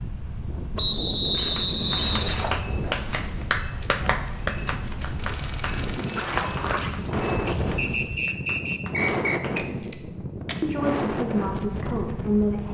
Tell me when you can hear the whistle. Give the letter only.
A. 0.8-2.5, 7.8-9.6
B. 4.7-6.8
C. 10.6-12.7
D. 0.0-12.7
A.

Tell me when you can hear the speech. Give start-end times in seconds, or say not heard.
10.6-12.7.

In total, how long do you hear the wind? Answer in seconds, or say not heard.
13 s.